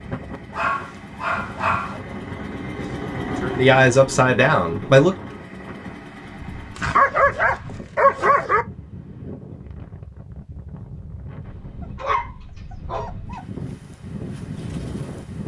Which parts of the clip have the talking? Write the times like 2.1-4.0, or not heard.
2.6-5.2.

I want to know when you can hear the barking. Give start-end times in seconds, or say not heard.
0.5-2.0, 6.8-8.7, 11.8-13.4.